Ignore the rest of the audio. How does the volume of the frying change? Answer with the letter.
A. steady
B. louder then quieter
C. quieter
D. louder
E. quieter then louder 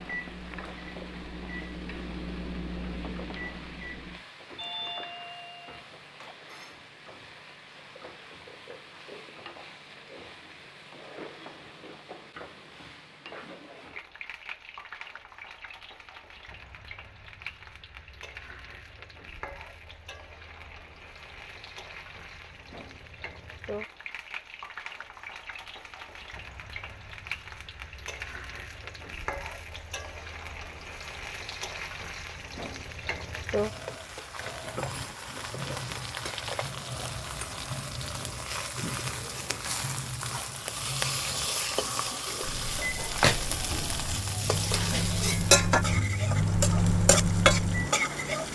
D.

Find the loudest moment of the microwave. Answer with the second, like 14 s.
47 s.